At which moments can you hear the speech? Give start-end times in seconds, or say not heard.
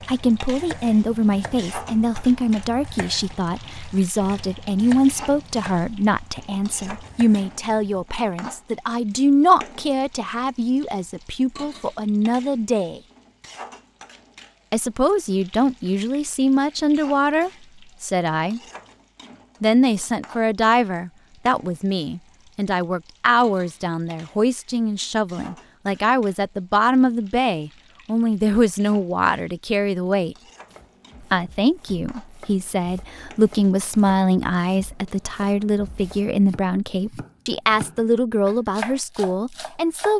0.1-13.0, 14.7-18.6, 19.6-30.4, 31.3-40.1.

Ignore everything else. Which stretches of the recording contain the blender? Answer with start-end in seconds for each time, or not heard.
not heard.